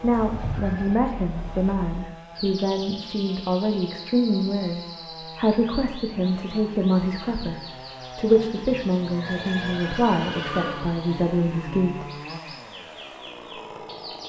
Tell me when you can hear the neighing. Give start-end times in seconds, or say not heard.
0.2-0.9, 9.2-10.8.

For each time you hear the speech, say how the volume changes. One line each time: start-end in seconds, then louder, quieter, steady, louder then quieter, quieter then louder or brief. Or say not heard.
0.0-12.1 steady.